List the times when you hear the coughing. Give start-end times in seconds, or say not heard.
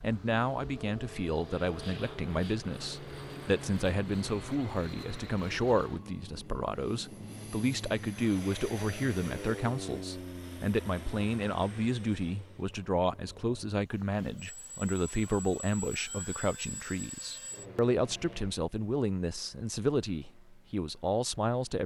not heard.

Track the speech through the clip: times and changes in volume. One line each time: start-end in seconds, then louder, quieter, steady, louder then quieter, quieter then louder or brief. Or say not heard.
0.0-21.8 steady.